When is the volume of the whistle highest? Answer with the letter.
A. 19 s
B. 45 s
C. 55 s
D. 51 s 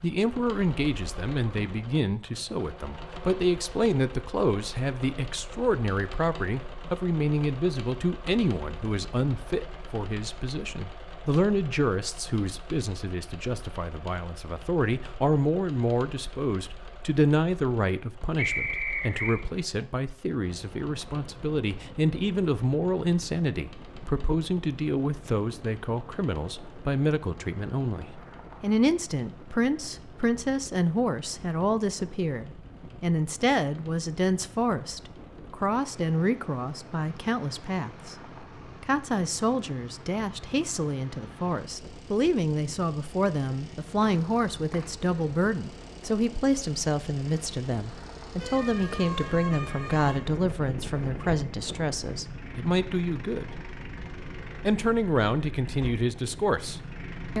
A.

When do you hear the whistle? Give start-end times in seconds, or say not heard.
18.4-19.4, 44.0-44.9.